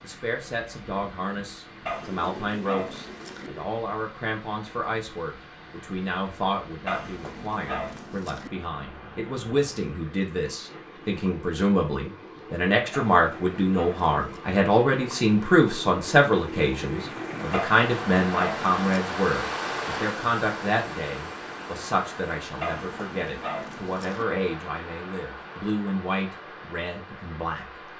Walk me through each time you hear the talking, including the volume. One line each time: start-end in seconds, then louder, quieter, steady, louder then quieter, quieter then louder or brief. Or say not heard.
0.0-27.9 louder then quieter.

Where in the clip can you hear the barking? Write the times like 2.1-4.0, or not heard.
1.9-3.5, 6.8-8.5, 12.9-14.4, 17.5-18.9, 22.6-24.2.